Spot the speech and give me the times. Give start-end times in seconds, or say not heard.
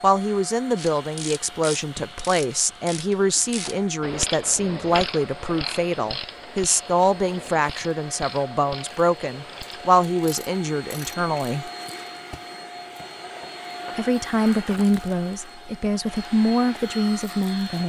0.0-11.7, 13.9-17.8.